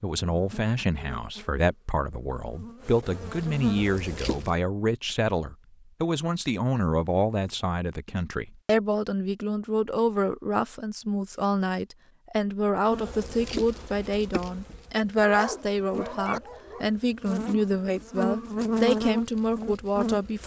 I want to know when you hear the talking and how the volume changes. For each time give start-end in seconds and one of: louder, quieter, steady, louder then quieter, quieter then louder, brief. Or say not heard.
0.0-20.4 steady.